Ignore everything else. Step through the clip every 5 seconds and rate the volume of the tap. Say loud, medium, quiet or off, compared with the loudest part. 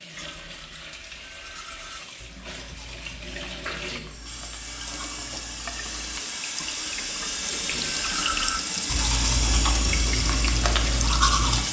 medium, loud, loud.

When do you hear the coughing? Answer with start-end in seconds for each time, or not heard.
3.7-4.2, 7.5-8.0.